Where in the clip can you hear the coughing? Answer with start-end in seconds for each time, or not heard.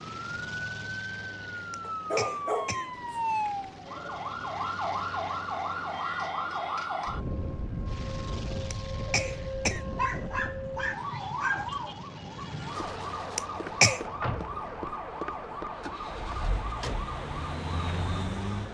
1.7-3.6, 8.7-9.8, 13.3-14.0.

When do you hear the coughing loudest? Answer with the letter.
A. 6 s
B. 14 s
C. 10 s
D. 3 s
B.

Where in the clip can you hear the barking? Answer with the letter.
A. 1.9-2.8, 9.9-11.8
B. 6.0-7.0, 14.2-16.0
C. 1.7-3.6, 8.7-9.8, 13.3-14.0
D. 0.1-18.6
A.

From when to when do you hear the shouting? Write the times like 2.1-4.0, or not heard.
not heard.